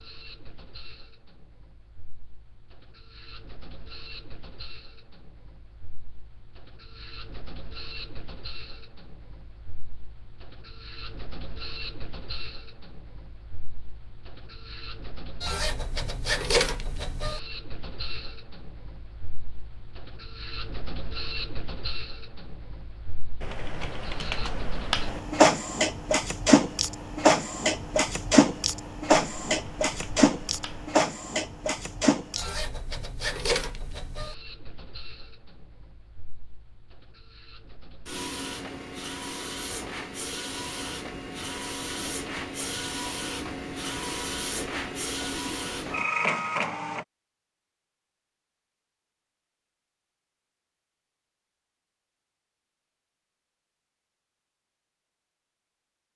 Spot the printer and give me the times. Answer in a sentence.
The printer can be heard from 0.0 to 47.0 s.